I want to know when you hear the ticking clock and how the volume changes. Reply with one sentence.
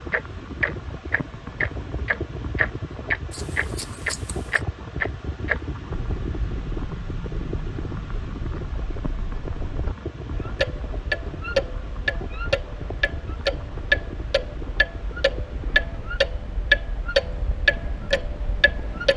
The ticking clock can be heard from 0.1 to 19.1 s, getting quieter then louder.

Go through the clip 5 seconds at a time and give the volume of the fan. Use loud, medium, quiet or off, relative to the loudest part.
loud, loud, loud, medium.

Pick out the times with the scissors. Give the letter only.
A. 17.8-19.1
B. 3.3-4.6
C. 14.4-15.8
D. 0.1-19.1
B.